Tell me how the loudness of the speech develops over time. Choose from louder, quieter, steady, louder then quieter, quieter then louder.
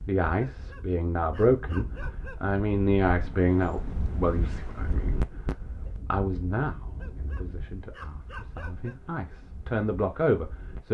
quieter then louder.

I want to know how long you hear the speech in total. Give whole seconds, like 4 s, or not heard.
11 s.